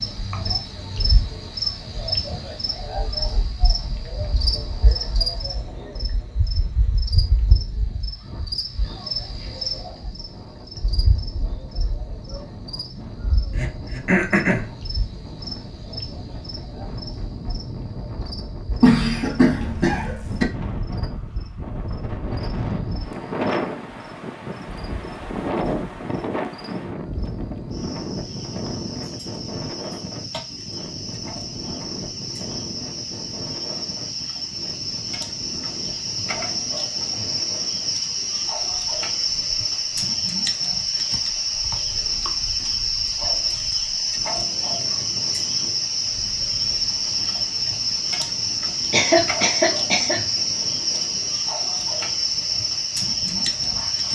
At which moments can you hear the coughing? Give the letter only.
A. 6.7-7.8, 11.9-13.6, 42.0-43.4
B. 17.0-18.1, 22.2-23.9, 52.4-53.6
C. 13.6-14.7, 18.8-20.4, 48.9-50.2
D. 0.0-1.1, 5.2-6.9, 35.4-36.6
C.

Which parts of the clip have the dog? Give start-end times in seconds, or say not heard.
not heard.